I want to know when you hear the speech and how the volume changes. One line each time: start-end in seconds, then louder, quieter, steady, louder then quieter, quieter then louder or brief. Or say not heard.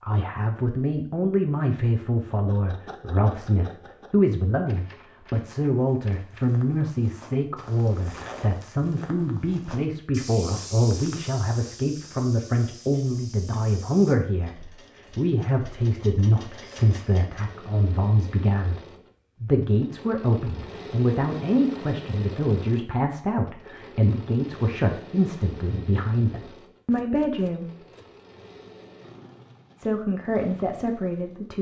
0.0-27.7 steady
29.8-31.5 brief.